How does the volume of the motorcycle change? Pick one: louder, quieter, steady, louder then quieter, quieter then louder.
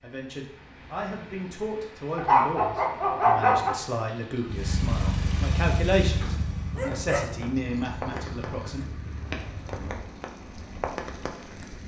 quieter.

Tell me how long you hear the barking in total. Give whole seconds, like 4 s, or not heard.
4 s.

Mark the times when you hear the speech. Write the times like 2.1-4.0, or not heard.
0.0-8.8.